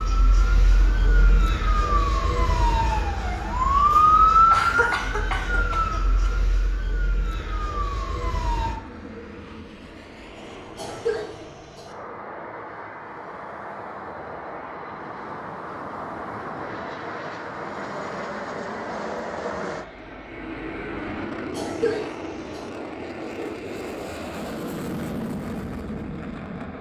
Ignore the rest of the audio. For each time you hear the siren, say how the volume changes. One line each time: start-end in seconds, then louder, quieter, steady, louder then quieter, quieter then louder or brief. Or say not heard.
0.0-8.8 louder then quieter.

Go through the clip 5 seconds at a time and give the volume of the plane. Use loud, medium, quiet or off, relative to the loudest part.
medium, medium, medium, loud, loud, loud.